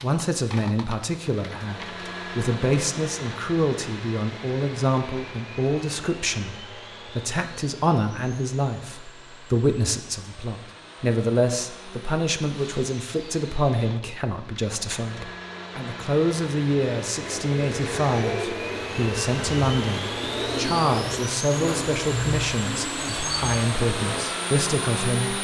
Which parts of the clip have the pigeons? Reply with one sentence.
The pigeons can be heard from 17.2 to 24.2 s.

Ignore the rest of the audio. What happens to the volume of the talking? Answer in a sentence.
The volume of the talking stays about the same.